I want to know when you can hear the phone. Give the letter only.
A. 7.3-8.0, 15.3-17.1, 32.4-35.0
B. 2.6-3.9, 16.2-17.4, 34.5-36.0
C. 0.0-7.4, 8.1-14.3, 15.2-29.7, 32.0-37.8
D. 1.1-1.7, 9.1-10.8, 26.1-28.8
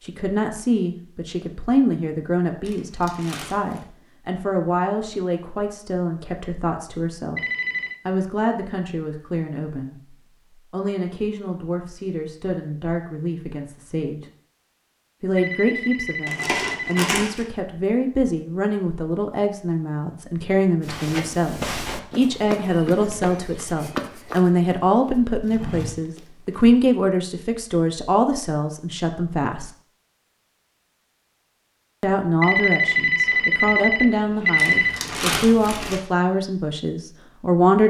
A.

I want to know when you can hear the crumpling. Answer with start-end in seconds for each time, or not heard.
2.6-3.9, 16.2-17.4, 34.5-36.0.